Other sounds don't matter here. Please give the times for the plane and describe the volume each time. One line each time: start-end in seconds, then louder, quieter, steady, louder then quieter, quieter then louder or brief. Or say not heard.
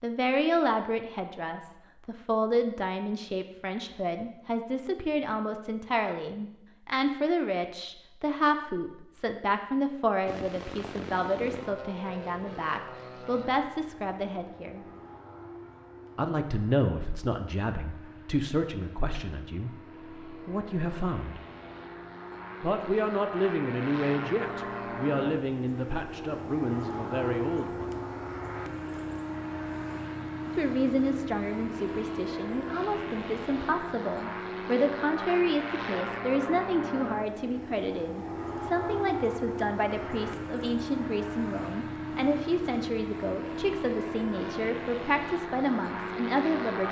10.2-46.8 louder.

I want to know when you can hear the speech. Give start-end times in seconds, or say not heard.
0.0-14.8, 16.1-21.4, 22.6-28.1, 30.6-46.8.